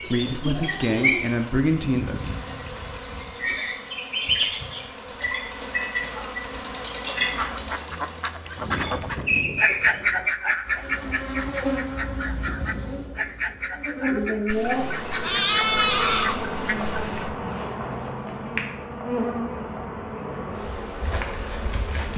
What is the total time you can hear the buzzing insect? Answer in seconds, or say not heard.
22 s.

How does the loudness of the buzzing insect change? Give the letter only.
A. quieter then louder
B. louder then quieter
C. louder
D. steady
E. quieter
D.